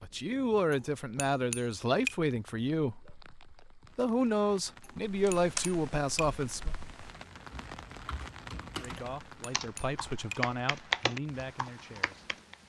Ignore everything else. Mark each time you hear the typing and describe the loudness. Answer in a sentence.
The typing can be heard from 5.0 to 12.6 s, getting quieter then louder.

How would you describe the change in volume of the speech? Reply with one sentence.
The loudness of the speech goes down.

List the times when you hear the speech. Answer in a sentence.
The speech can be heard from 0.0 to 6.7 s and from 8.7 to 12.3 s.